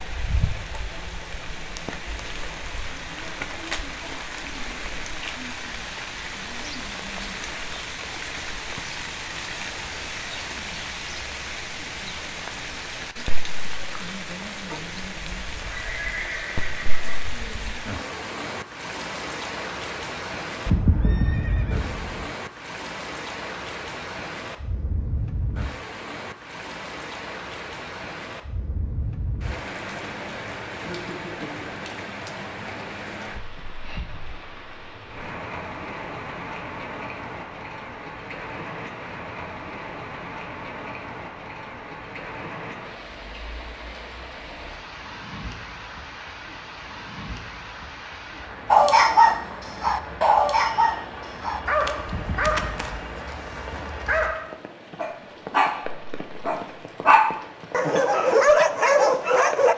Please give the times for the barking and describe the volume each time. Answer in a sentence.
You can hear the barking from 48.7 to 59.7 s, getting quieter then louder.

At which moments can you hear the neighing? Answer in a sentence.
The neighing can be heard from 15.7 to 17.2 s, from 20.6 to 22.3 s and from 52.0 to 53.0 s.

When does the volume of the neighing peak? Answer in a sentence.
The volume of the neighing peaks at 21 seconds.